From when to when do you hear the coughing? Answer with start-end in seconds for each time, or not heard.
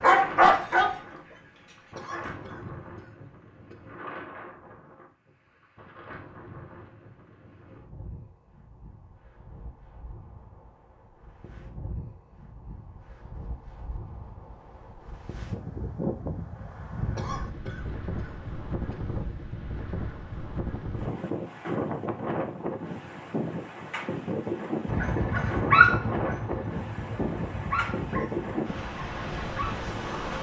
1.9-3.9, 17.1-19.1.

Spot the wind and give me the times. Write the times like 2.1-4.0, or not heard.
0.0-30.3.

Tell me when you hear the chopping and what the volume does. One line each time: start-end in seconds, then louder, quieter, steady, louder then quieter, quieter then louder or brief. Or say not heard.
not heard.